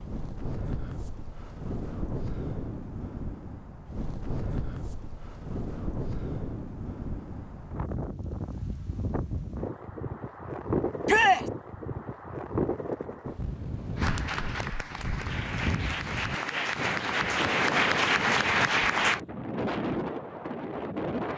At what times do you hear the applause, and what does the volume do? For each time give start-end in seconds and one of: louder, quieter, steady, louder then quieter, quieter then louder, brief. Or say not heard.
13.9-19.2 louder.